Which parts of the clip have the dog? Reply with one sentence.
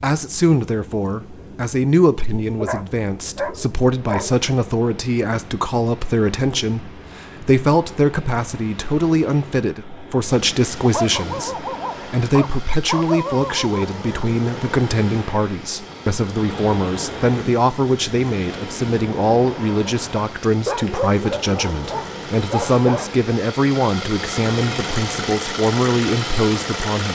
The dog can be heard from 2.6 to 4.4 s, from 10.9 to 13.8 s and from 20.6 to 23.1 s.